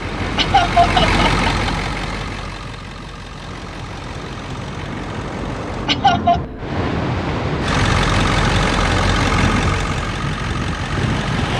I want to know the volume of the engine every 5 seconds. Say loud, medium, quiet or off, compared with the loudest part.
loud, loud, medium.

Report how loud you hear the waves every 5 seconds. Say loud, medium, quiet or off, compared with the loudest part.
medium, loud, loud.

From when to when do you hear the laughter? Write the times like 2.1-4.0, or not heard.
0.3-1.5, 5.8-6.4.